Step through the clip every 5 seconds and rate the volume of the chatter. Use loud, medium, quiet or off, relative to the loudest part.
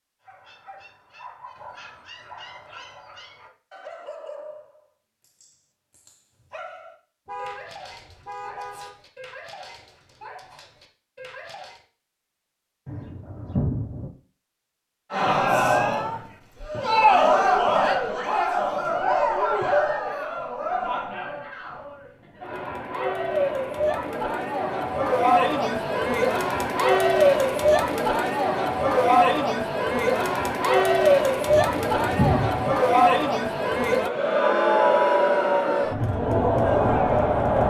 off, off, off, loud, medium, loud, loud, loud.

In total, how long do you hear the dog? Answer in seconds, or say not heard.
12 s.